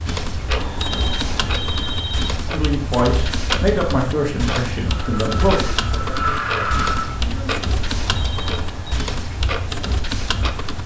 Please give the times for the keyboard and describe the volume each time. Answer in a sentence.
You can hear the keyboard from 0.1 to 10.8 s, at a steady volume.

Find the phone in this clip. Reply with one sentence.
You can hear the phone from 0.6 to 2.3 s and from 8.0 to 9.1 s.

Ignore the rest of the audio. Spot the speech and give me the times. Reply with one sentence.
You can hear the speech from 2.5 to 7.5 s.